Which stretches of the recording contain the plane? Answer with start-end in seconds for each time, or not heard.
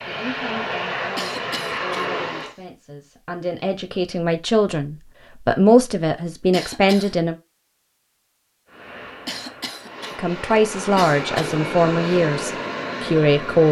0.0-2.5, 8.7-13.6.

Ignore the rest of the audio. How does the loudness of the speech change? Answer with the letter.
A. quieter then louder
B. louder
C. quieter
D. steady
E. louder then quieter
B.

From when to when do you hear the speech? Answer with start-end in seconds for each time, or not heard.
0.1-7.3, 10.2-13.6.